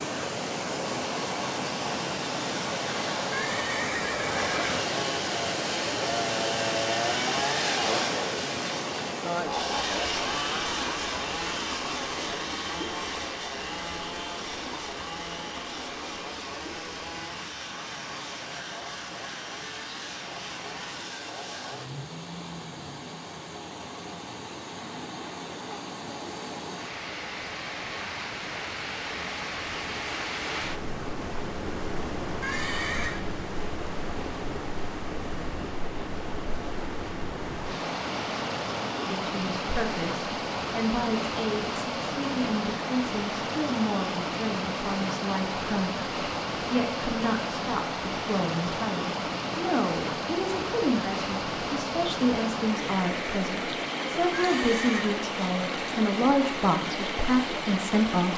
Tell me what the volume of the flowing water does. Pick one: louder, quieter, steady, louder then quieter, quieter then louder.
quieter then louder.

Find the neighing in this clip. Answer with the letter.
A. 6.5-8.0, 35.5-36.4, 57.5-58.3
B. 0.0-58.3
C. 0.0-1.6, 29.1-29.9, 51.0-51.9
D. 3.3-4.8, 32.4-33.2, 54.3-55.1
D.